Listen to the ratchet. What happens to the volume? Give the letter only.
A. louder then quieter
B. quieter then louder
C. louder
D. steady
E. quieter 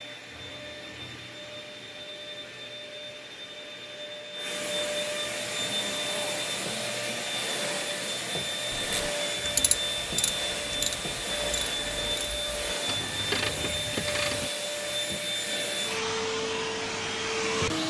B.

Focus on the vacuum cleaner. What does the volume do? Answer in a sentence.
The volume of the vacuum cleaner goes up.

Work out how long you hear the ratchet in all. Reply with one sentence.
The ratchet can be heard for 6 seconds in total.